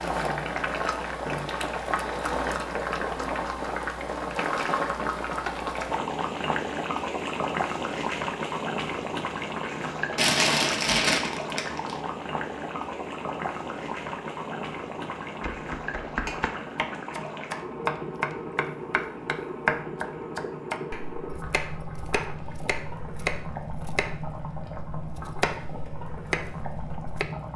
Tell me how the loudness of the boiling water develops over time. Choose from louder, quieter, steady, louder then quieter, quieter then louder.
quieter.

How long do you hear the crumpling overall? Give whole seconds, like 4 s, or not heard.
2 s.